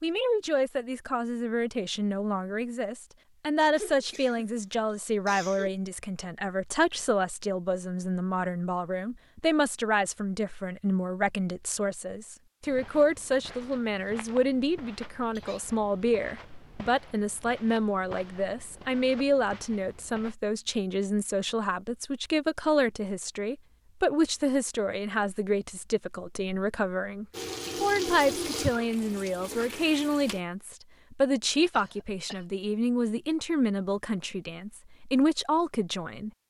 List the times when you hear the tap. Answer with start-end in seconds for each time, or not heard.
27.3-30.4.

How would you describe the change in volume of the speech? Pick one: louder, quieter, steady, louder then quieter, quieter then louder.
steady.